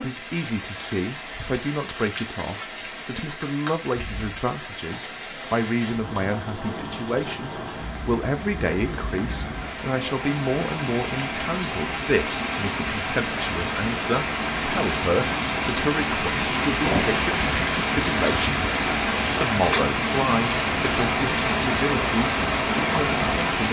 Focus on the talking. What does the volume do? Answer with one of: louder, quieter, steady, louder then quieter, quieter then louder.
steady.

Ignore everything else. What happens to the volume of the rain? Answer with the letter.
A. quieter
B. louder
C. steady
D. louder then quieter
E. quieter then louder
B.